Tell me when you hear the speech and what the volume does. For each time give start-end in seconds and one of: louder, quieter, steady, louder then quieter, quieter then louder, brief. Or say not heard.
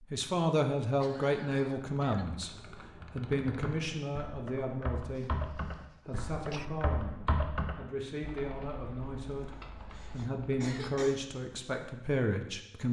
0.0-12.8 quieter then louder.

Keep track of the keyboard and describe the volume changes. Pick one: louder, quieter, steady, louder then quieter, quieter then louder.
louder then quieter.